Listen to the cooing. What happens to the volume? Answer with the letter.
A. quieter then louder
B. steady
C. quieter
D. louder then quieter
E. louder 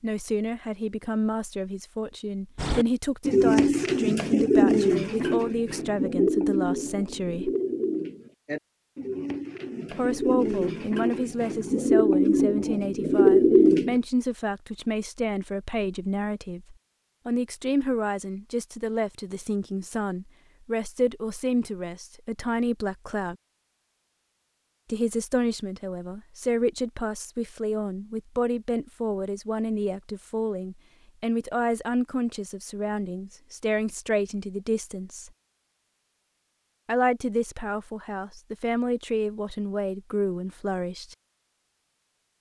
A.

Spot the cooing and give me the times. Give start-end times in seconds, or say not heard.
2.5-13.9.